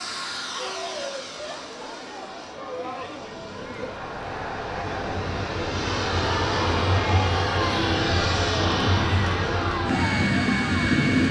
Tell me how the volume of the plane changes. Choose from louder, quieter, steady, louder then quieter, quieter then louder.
louder.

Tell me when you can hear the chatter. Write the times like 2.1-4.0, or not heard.
0.0-11.1.